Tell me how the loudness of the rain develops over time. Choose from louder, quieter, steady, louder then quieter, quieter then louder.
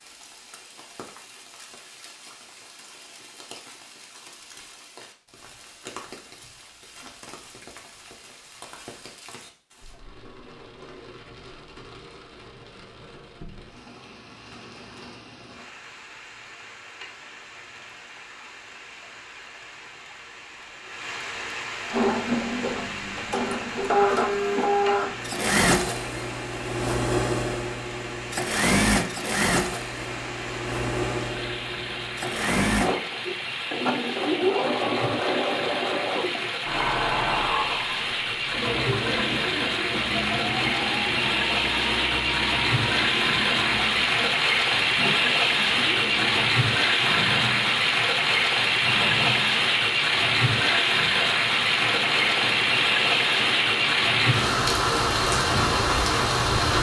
louder.